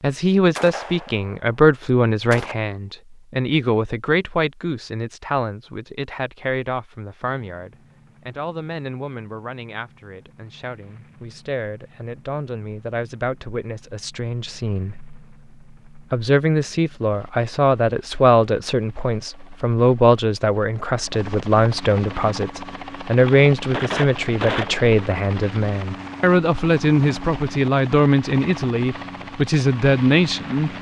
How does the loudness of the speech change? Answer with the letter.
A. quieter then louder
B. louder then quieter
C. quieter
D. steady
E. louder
A.